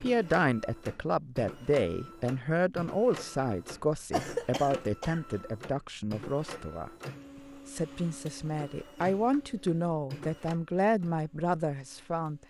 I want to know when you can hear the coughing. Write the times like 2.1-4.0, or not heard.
4.1-5.2.